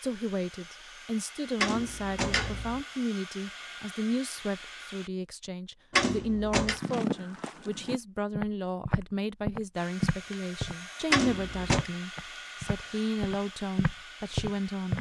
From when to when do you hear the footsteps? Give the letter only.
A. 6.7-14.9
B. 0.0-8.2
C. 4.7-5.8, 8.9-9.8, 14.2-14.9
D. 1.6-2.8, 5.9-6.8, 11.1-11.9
A.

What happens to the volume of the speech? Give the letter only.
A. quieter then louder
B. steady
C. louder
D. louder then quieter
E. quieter
B.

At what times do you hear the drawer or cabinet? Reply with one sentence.
You can hear the drawer or cabinet from 1.6 to 2.8 s, from 5.9 to 6.8 s and from 11.1 to 11.9 s.